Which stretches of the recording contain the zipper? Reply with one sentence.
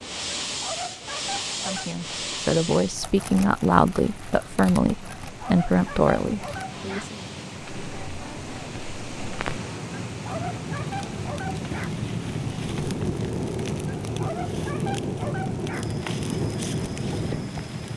You can't hear the zipper here.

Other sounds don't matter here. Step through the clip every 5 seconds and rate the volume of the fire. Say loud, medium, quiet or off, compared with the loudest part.
medium, medium, loud, loud.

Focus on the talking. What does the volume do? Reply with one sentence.
The loudness of the talking stays about the same.